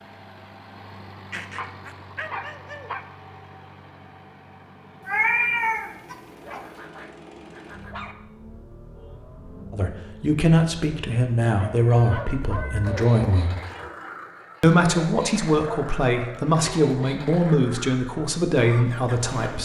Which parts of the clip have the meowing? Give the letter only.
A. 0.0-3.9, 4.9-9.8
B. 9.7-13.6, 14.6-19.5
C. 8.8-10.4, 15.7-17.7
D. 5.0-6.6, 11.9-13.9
D.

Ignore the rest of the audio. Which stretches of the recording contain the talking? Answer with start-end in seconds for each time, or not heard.
9.7-13.6, 14.6-19.5.